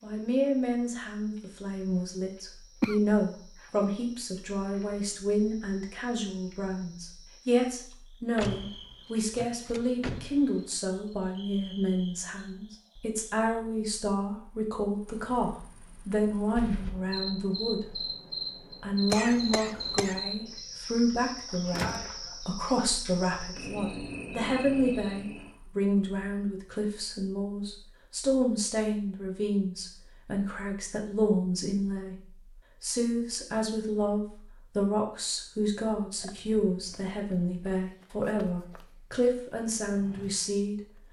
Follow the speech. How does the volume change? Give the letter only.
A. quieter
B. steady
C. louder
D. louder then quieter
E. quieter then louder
B.